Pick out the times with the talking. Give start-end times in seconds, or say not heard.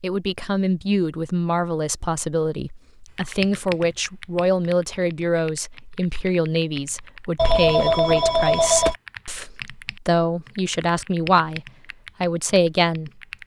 0.0-13.1.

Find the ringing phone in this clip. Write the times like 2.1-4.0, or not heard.
7.3-8.9.